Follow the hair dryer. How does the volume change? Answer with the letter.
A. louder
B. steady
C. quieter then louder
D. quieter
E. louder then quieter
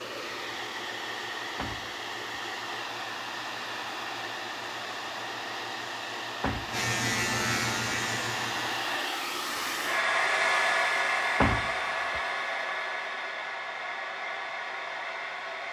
E.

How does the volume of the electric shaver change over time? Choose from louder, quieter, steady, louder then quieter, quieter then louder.
louder.